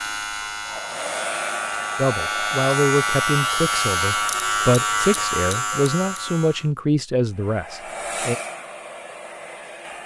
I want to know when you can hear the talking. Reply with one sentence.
You can hear the talking from 1.9 to 8.3 s.